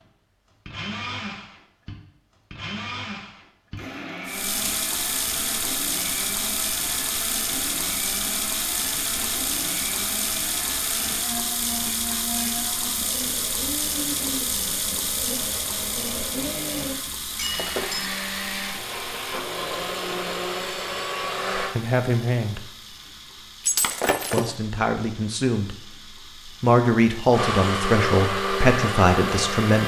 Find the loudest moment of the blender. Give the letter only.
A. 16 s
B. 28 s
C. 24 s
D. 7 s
B.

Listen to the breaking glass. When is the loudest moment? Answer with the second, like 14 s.
24 s.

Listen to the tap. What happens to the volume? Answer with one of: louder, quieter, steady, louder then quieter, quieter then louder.
quieter.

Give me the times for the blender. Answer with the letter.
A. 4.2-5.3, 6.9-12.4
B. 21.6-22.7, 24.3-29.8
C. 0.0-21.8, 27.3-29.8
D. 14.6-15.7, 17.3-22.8
C.